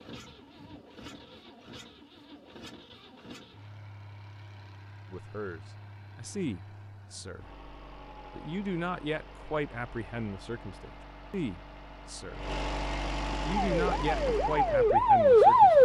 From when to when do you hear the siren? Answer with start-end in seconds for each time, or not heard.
13.6-15.8.